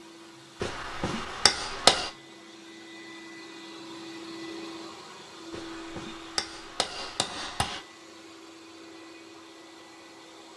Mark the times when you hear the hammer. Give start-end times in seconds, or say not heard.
0.6-2.1, 5.5-7.8.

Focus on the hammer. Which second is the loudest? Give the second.
2 s.